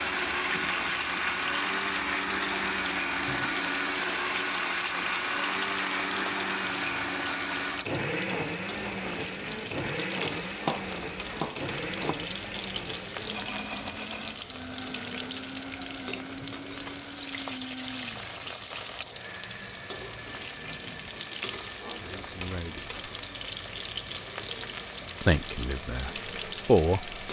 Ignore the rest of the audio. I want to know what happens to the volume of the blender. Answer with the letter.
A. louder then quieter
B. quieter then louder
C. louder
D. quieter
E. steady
D.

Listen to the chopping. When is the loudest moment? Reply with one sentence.
The loudest moment of the chopping is at 11 seconds.